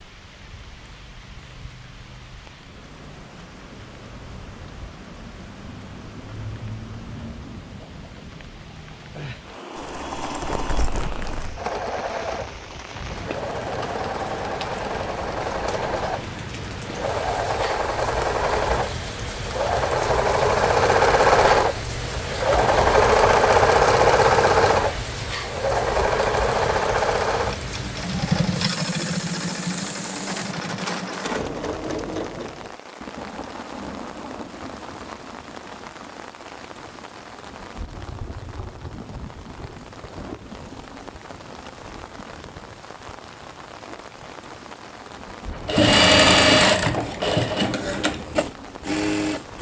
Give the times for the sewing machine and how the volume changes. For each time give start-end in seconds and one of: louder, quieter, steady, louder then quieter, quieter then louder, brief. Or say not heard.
9.7-32.8 louder then quieter
45.5-49.5 quieter.